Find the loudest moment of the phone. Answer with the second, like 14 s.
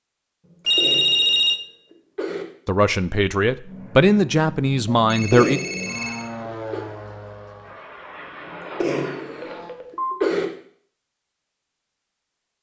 1 s.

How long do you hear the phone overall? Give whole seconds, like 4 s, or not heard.
3 s.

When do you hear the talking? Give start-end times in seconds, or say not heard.
2.6-5.6.